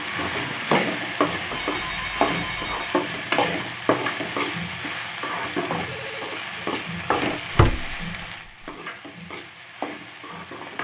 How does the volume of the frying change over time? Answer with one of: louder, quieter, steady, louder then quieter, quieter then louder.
quieter.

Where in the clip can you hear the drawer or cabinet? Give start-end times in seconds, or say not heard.
0.3-1.9, 7.1-8.0.